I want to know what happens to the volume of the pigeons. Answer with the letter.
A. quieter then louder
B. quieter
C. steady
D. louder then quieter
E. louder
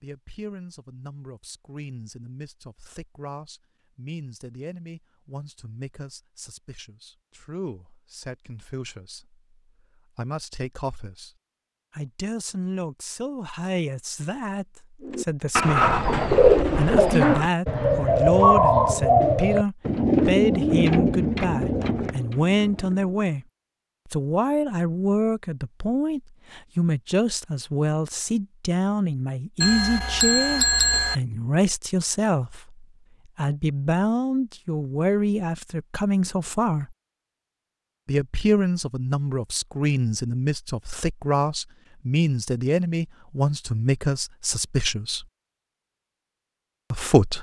B.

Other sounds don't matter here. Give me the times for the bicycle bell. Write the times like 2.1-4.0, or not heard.
29.6-31.1.